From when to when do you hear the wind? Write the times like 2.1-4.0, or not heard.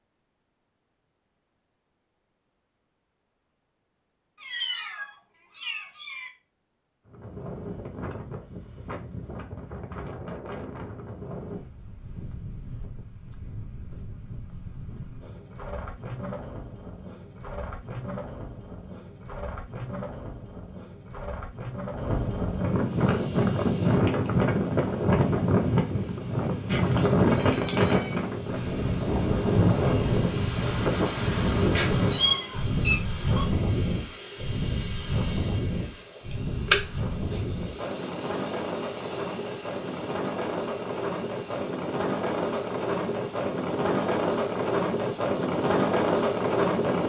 7.0-47.0.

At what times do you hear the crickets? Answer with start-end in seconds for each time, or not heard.
22.9-47.0.